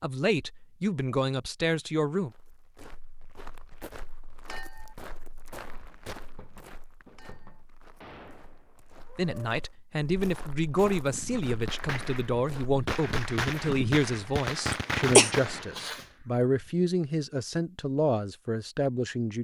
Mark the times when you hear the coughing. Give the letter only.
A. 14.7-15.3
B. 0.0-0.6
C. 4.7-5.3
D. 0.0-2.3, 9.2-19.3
A.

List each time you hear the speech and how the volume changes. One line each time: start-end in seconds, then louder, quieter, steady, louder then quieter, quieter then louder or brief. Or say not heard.
0.0-2.3 brief
9.2-19.3 steady.